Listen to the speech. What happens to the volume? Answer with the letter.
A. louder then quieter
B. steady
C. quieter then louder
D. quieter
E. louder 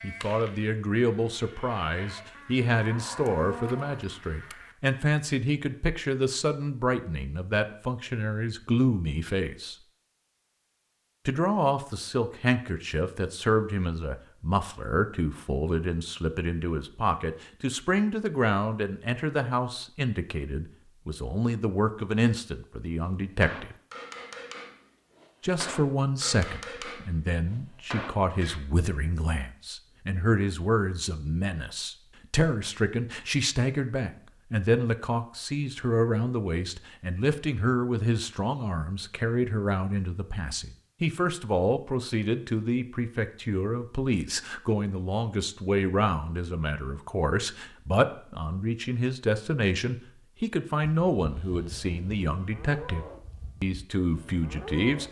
B.